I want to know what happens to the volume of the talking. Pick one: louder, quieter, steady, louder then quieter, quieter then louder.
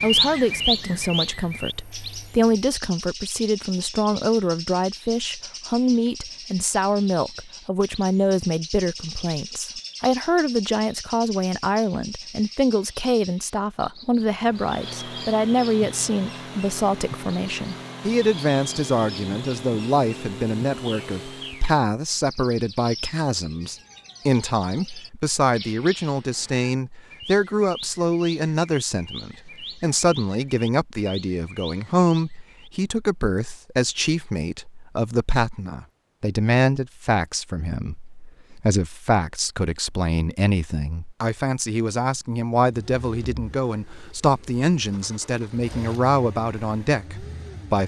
steady.